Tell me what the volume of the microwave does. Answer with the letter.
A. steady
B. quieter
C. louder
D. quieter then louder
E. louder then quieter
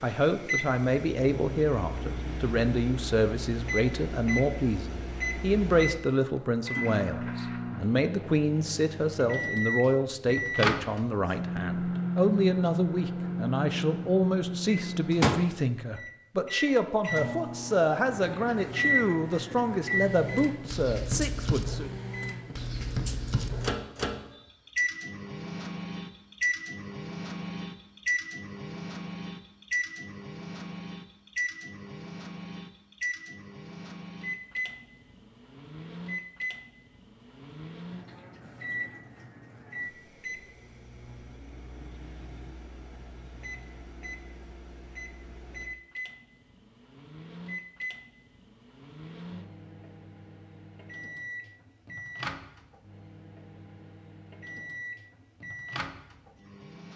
B.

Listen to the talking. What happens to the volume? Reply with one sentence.
The loudness of the talking stays about the same.